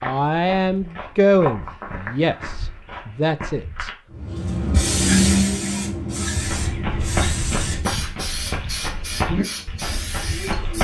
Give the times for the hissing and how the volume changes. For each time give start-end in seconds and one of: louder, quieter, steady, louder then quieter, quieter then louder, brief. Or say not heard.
4.1-10.7 quieter.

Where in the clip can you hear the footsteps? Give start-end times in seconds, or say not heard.
0.0-4.0, 6.3-10.7.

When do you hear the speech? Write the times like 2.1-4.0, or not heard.
0.0-3.9.